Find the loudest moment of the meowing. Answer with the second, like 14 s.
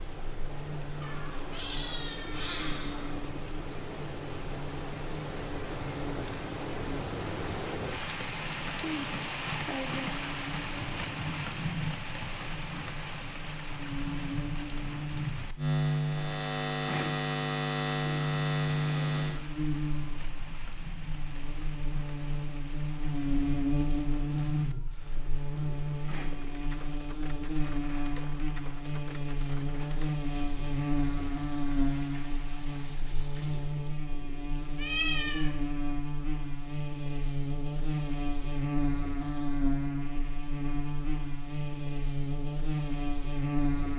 35 s.